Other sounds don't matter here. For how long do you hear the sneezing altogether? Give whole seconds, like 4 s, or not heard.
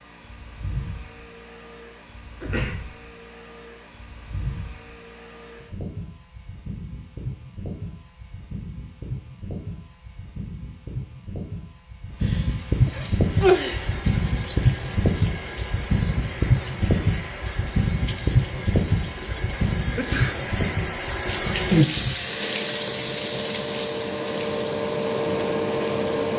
3 s.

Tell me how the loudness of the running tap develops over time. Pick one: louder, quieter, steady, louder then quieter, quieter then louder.
louder then quieter.